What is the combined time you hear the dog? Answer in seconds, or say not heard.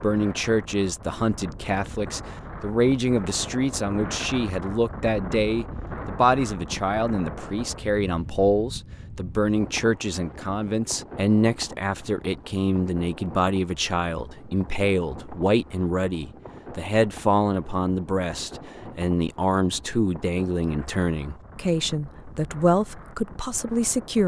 not heard.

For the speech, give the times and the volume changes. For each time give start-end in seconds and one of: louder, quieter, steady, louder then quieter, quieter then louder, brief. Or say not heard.
0.0-24.2 steady.